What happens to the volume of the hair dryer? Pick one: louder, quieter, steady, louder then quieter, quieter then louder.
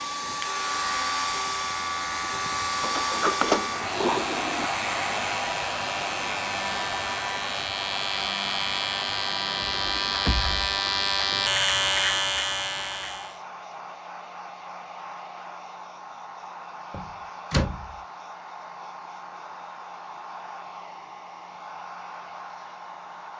quieter.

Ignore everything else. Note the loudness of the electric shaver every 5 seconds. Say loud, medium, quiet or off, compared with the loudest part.
medium, medium, loud, off, off.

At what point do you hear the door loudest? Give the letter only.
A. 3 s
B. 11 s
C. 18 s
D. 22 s
A.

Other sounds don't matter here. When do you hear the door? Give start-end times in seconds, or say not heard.
2.8-4.7, 9.6-10.6, 16.9-17.9.